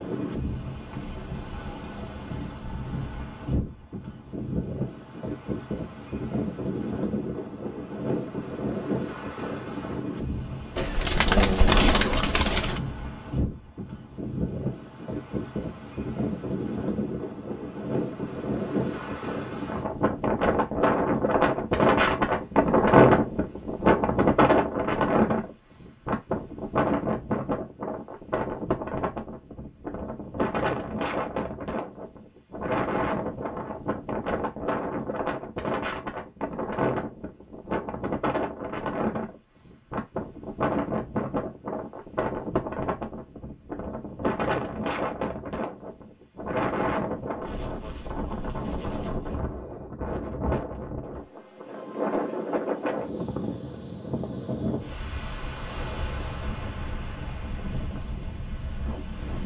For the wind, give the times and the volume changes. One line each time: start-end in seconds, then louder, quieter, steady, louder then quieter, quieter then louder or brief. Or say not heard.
0.0-59.4 louder then quieter.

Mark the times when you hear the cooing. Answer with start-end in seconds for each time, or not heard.
10.8-12.8.